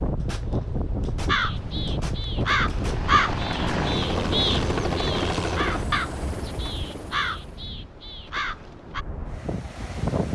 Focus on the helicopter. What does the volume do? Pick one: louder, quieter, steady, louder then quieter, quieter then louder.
quieter.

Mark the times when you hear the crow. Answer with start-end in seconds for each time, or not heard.
1.2-9.1.